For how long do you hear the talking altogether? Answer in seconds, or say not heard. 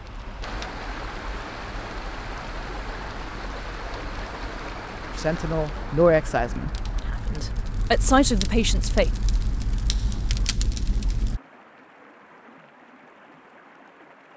4 s.